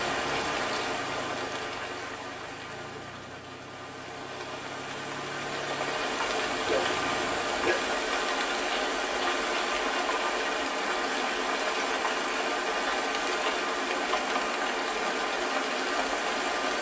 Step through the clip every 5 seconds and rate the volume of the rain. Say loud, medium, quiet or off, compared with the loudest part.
medium, loud, loud, loud.